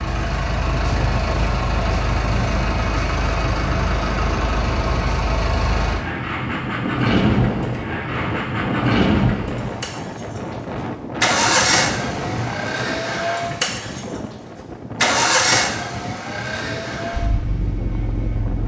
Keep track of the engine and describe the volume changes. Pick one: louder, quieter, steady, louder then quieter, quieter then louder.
steady.